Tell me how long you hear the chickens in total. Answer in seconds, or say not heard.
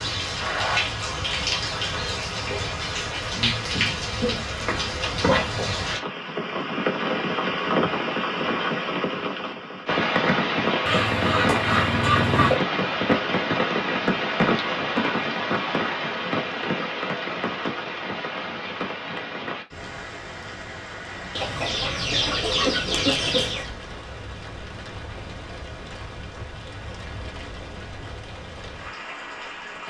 4 s.